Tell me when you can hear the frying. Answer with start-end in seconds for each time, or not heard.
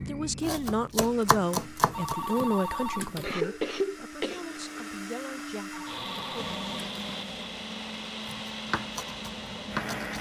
6.3-10.1.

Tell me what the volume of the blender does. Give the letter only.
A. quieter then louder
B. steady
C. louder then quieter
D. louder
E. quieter
D.